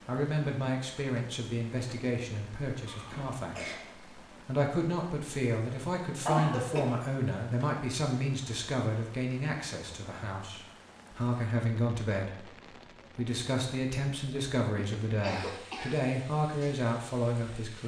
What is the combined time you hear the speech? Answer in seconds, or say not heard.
18 s.